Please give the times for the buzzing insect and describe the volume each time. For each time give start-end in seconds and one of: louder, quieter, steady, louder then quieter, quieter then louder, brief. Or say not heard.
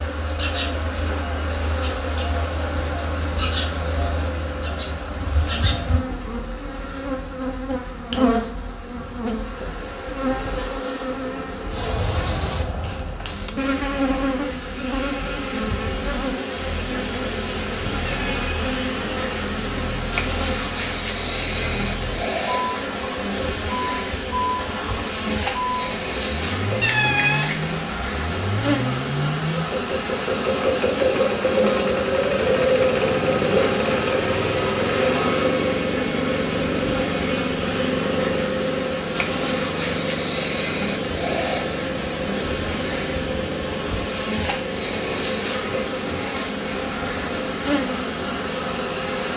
0.0-49.3 steady.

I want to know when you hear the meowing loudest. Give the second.
27 s.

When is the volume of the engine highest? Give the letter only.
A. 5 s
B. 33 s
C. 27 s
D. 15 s
B.